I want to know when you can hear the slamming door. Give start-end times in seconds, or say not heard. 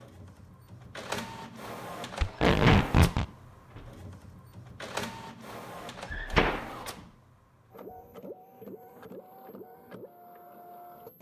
2.5-3.9, 6.0-7.0.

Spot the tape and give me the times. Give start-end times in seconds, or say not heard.
2.2-3.2.